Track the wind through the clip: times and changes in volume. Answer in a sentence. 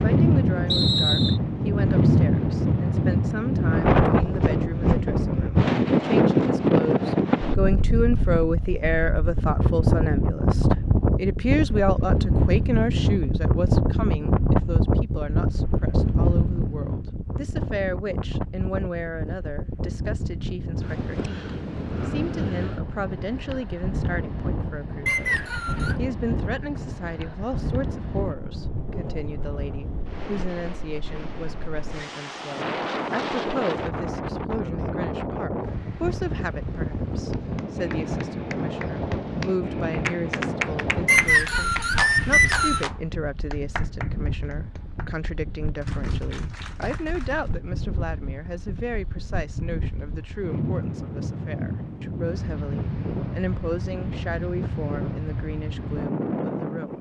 The wind can be heard from 0.0 to 56.9 s, getting quieter.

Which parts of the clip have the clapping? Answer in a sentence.
The clapping can be heard from 37.3 to 47.6 s.